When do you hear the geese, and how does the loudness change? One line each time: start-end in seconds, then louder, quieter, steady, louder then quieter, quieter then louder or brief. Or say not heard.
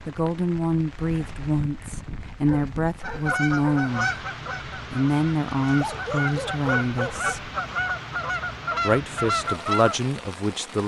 3.0-10.0 quieter then louder.